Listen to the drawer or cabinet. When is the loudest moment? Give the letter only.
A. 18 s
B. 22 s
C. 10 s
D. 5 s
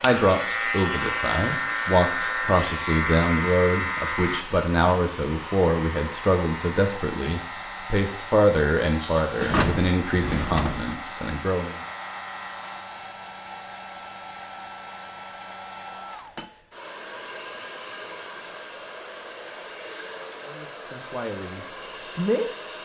C.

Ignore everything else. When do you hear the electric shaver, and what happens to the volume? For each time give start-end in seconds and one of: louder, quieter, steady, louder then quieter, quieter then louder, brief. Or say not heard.
0.0-12.9 quieter.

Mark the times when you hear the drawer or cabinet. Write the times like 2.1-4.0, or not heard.
9.3-10.9.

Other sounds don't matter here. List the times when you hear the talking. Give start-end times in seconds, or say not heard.
0.0-11.8, 20.4-22.5.